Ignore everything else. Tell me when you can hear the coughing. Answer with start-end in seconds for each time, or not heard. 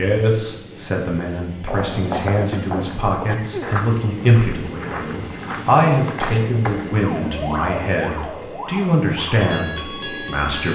2.1-3.7.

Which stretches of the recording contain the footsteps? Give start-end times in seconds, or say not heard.
1.6-7.0.